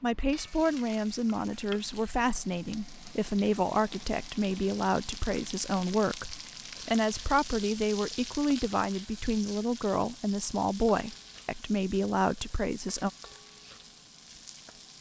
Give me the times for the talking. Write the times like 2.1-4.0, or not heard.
0.0-13.1.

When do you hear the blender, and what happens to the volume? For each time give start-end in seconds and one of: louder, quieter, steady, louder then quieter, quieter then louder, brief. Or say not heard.
not heard.